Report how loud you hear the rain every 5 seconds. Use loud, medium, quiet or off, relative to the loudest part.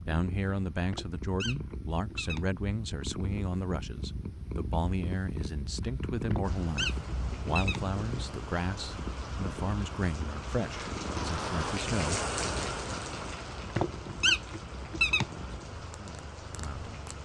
off, medium, loud, medium.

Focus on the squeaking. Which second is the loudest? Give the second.
14 s.